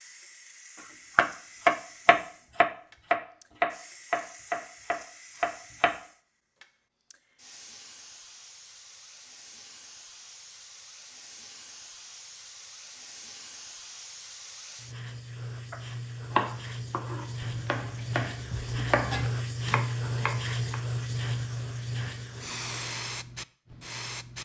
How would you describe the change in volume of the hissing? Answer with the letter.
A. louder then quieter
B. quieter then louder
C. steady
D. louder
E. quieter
D.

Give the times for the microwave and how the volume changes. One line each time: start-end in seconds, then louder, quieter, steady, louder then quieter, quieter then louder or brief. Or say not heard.
not heard.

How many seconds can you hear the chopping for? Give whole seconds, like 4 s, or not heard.
10 s.